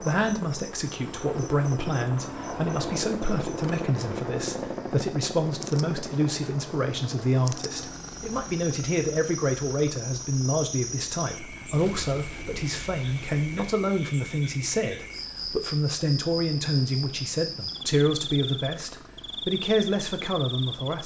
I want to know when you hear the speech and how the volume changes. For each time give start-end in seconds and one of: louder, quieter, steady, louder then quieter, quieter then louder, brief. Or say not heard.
0.0-21.0 steady.